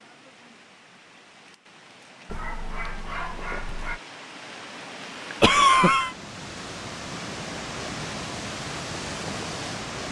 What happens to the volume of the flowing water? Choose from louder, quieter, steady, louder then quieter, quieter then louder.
louder.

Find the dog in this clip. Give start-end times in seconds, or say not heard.
2.2-4.0.